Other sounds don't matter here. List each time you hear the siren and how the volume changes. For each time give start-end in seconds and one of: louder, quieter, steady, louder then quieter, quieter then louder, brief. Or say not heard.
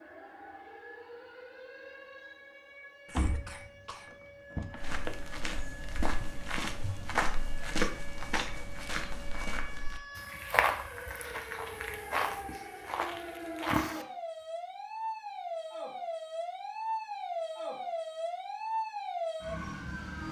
0.0-20.2 louder.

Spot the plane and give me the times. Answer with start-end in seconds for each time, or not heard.
not heard.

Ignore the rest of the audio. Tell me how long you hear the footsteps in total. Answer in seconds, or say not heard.
9 s.